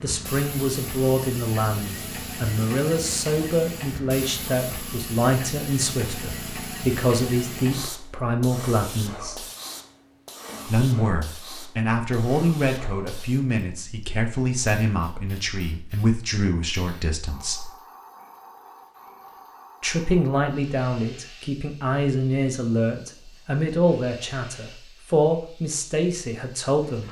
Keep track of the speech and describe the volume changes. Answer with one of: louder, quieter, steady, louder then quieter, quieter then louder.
steady.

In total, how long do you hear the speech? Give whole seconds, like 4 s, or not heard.
24 s.